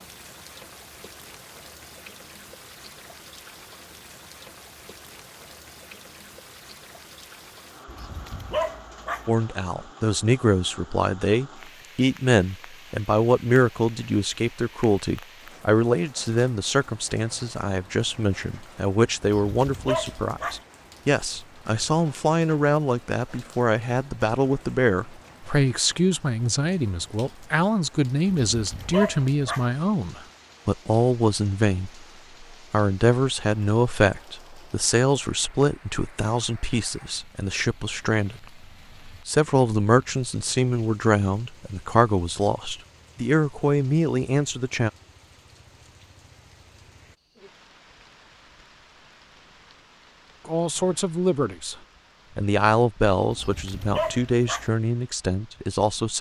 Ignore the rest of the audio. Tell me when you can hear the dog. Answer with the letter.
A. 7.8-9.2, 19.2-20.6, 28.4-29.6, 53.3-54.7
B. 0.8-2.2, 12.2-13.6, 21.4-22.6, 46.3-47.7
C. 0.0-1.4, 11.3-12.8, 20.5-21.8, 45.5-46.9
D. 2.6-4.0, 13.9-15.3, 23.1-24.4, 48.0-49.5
A.